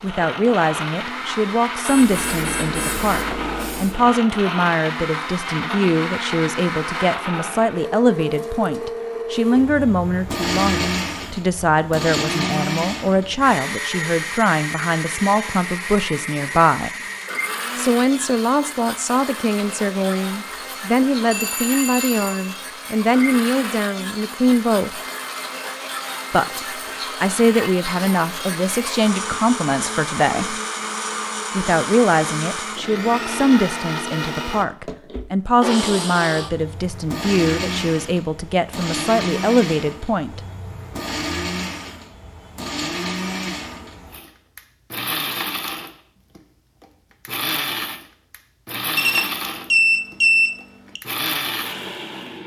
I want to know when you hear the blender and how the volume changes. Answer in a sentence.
The blender can be heard from 0.0 to 52.4 s, at a steady volume.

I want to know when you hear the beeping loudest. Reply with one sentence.
The loudest moment of the beeping is at 50 seconds.